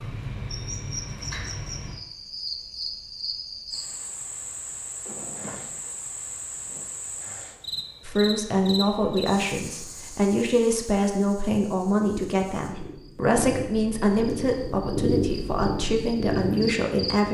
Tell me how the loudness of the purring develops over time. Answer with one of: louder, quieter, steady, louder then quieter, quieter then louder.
louder.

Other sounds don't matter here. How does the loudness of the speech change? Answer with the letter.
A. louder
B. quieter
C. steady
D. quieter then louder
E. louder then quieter
C.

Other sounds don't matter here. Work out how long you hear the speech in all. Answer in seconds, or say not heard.
9 s.